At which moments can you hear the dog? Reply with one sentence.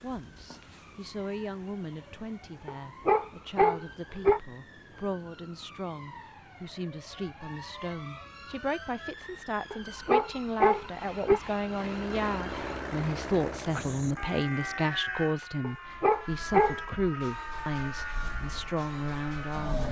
You can hear the dog from 2.6 to 4.4 s, from 9.7 to 11.4 s and from 15.6 to 16.8 s.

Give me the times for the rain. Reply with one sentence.
You can't hear the rain here.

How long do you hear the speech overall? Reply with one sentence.
You can hear the speech for 20 seconds altogether.